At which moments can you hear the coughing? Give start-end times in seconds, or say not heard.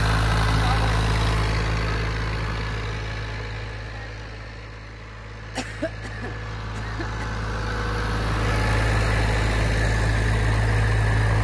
5.5-7.2.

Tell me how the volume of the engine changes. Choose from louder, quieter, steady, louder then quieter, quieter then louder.
quieter then louder.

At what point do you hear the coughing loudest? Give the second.
6 s.